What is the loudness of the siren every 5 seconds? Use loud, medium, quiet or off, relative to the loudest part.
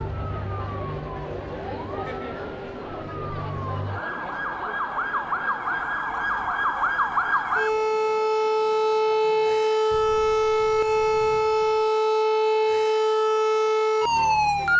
quiet, loud, loud.